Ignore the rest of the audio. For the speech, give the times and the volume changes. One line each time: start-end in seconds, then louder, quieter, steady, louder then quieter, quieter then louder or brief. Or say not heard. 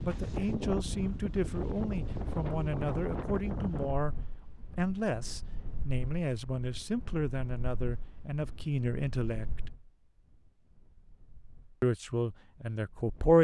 0.0-9.7 steady
11.8-13.3 brief.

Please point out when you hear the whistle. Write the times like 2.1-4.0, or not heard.
not heard.